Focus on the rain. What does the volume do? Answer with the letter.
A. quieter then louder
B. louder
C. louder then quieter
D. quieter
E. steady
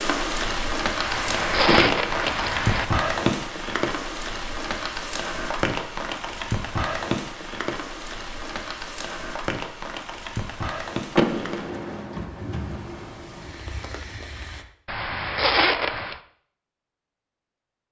D.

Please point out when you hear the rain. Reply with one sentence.
You can hear the rain from 0.0 to 14.7 s.